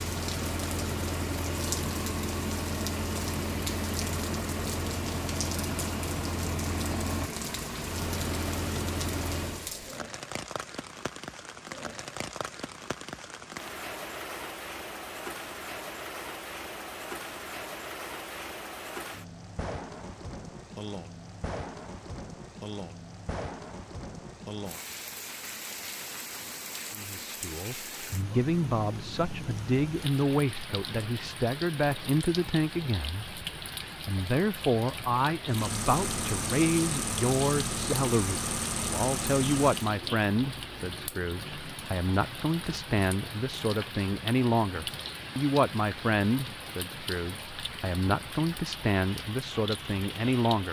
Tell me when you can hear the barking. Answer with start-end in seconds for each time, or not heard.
not heard.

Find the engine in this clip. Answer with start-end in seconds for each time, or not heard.
0.0-9.7, 35.5-39.9.